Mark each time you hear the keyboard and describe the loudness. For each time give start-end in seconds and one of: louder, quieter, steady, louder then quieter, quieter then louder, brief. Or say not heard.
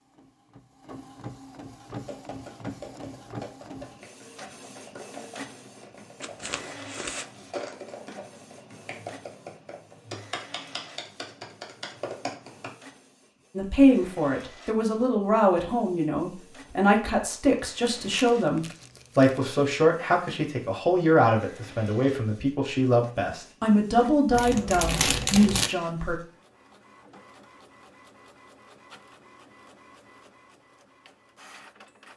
1.9-12.7 louder.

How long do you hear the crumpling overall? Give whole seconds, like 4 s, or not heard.
4 s.